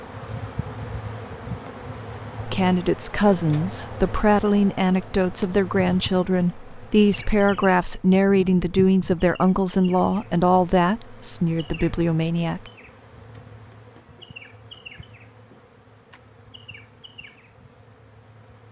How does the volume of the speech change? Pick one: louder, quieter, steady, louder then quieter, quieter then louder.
steady.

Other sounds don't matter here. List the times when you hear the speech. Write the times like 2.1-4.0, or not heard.
2.5-12.7.